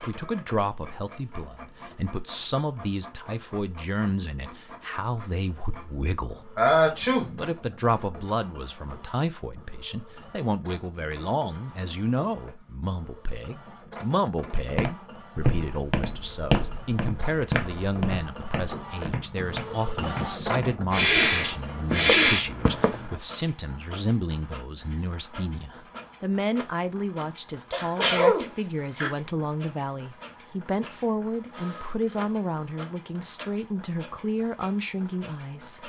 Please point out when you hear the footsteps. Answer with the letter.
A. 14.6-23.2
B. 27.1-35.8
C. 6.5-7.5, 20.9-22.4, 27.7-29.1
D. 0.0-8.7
A.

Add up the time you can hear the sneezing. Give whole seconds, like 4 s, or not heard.
4 s.